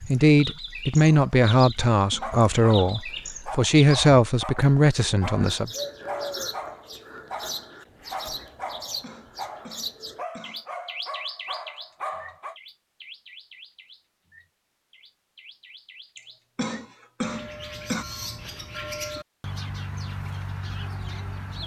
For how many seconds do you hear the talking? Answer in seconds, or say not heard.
6 s.